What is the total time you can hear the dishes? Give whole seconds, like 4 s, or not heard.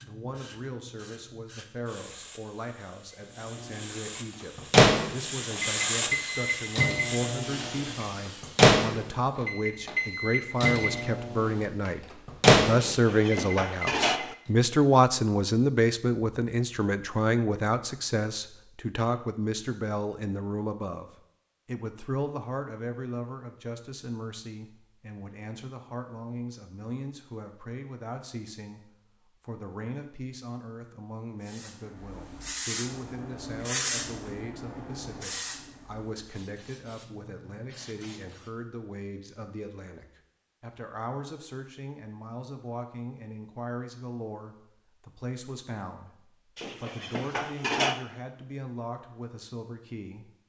3 s.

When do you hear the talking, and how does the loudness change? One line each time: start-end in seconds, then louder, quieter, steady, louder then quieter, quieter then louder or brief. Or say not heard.
0.0-50.3 louder then quieter.